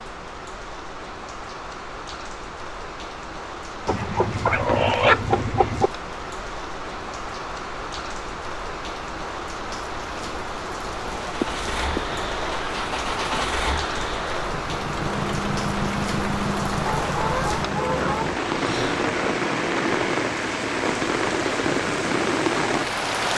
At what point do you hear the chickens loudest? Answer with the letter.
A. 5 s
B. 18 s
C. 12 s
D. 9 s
A.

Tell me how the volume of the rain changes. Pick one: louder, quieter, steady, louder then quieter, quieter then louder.
louder.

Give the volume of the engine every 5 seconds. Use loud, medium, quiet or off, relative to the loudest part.
off, off, loud, loud, loud.